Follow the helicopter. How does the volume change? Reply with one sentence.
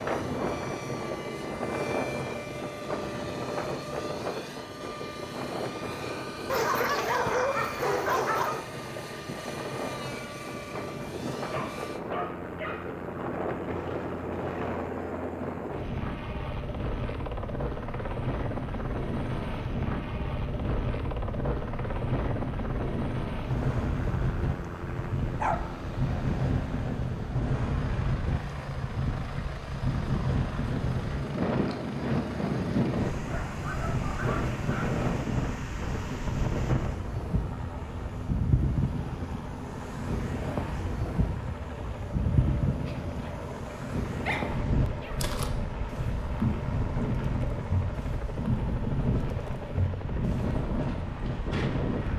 The volume of the helicopter stays about the same.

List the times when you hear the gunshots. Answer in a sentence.
You can't hear the gunshots here.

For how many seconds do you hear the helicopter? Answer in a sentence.
The helicopter can be heard for 52 seconds in total.